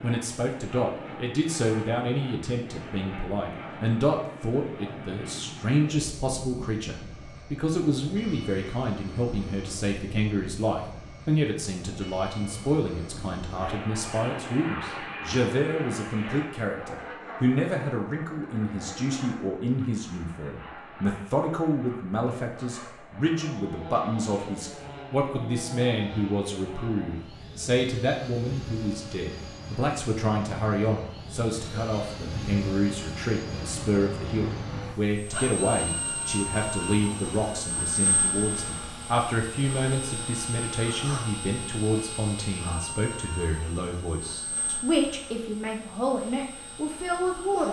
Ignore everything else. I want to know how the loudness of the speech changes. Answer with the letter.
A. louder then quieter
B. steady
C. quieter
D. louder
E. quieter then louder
B.